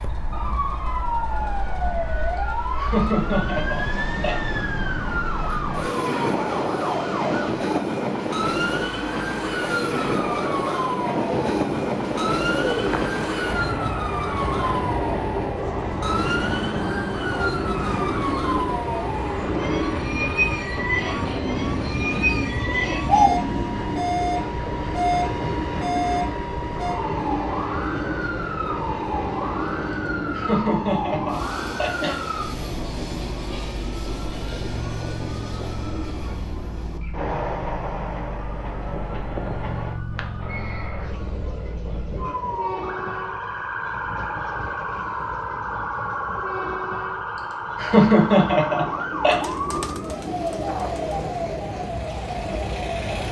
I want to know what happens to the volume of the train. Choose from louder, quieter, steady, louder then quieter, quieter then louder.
quieter.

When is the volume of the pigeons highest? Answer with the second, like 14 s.
23 s.